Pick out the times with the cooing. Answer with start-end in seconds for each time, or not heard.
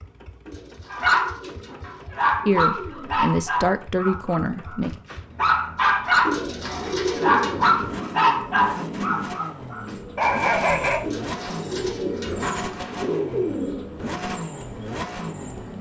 0.5-3.3, 6.2-7.8, 11.0-13.9.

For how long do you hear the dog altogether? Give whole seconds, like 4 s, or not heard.
10 s.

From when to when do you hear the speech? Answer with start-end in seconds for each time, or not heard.
2.5-5.0.